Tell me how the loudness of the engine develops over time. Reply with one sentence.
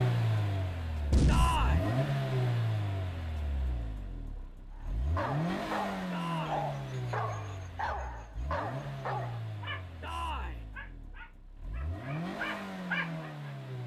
The volume of the engine goes down.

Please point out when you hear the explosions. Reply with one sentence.
The explosions can be heard from 1.1 to 1.9 s.